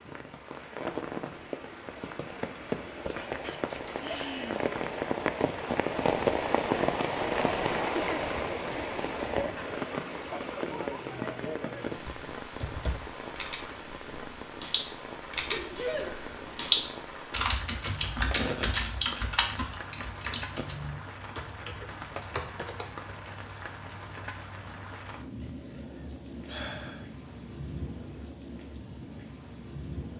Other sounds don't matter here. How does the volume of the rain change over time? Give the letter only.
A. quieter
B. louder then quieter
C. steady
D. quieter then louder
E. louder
A.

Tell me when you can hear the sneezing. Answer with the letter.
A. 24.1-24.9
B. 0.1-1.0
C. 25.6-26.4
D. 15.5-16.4
D.